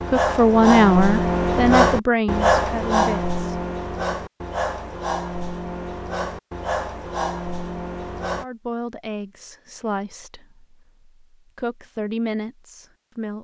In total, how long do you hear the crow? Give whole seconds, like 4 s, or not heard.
not heard.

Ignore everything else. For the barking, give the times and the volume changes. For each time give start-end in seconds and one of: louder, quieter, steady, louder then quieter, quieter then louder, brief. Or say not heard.
0.0-8.4 quieter.